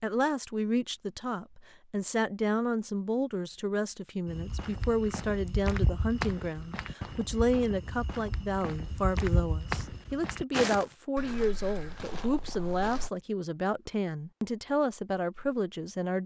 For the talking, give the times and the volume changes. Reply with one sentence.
You can hear the talking from 0.0 to 16.2 s, at a steady volume.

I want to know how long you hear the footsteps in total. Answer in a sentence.
The footsteps can be heard for 9 seconds in total.